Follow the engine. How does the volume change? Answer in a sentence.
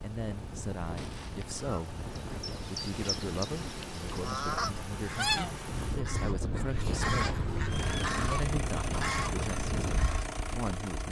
The loudness of the engine goes up.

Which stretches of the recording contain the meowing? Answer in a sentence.
The meowing can be heard from 0.9 to 1.6 s and from 7.2 to 8.2 s.